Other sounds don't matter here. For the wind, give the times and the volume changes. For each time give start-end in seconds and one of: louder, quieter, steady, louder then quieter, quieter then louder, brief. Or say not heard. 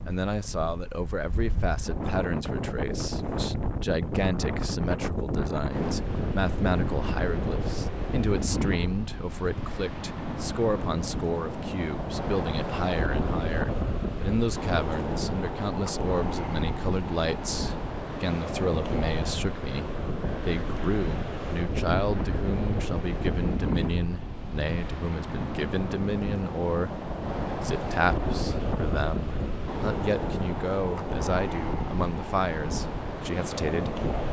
0.0-34.2 steady.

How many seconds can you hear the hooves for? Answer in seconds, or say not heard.
not heard.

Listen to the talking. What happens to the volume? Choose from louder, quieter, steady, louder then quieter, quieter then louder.
steady.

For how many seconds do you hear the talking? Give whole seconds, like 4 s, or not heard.
33 s.